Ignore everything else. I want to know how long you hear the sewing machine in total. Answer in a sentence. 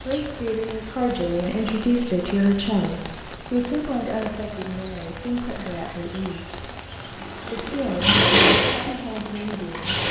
You can hear the sewing machine for 2 seconds altogether.